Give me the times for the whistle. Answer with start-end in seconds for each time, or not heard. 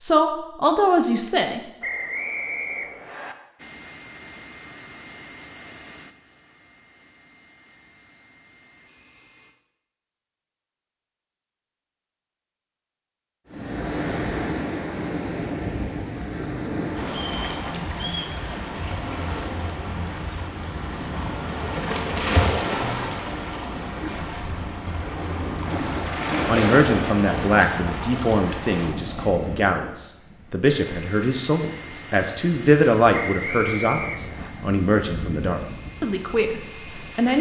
1.8-3.4, 17.3-18.4, 33.1-34.5.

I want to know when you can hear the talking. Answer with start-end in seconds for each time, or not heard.
0.0-1.6, 26.4-37.3.